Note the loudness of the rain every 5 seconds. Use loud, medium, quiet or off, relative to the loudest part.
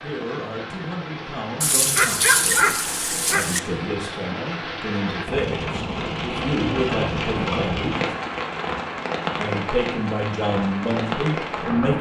medium, loud, loud.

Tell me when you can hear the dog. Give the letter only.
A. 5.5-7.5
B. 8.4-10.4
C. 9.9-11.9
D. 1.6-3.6
D.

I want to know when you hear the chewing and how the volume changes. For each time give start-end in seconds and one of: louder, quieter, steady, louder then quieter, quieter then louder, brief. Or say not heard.
not heard.